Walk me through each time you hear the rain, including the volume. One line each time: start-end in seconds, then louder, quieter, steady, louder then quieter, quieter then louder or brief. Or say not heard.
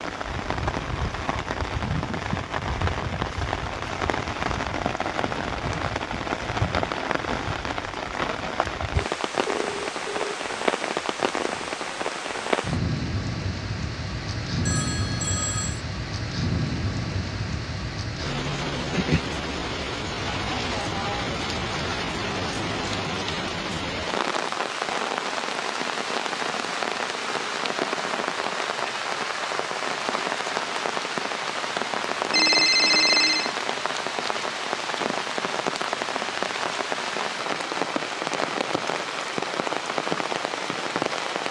0.0-41.4 steady.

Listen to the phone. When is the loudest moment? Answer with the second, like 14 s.
33 s.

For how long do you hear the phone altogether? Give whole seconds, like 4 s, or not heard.
4 s.